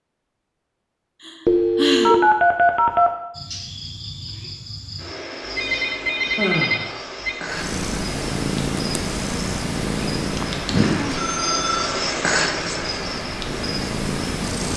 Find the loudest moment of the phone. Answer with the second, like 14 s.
2 s.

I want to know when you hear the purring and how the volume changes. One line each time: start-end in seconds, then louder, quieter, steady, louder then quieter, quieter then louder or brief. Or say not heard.
7.5-14.7 quieter then louder.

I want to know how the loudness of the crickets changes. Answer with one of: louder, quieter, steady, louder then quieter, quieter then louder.
louder.